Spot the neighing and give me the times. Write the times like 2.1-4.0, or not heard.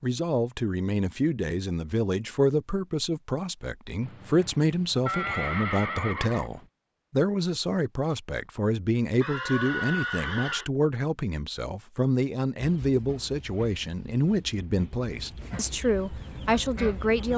4.0-6.7, 9.2-10.7.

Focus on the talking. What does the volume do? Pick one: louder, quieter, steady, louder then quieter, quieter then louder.
steady.